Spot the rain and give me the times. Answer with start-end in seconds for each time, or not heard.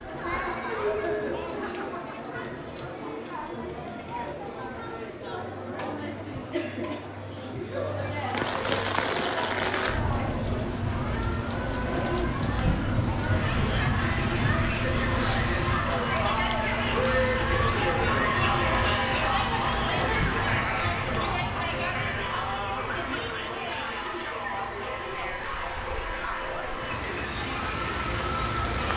8.2-28.9.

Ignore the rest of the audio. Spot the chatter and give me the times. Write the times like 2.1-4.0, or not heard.
0.0-28.9.